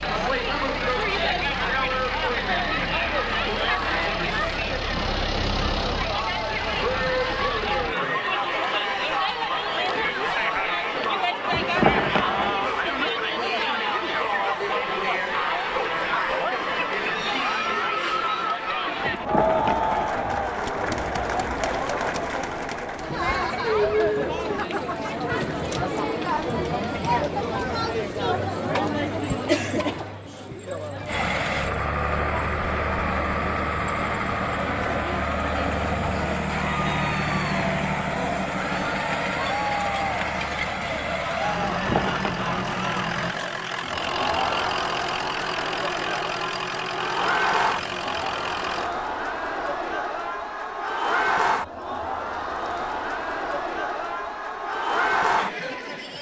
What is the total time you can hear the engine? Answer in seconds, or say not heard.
26 s.